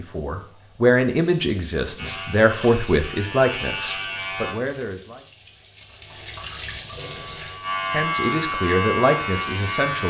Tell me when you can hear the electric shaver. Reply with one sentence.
The electric shaver can be heard from 1.9 to 4.5 s and from 7.0 to 10.0 s.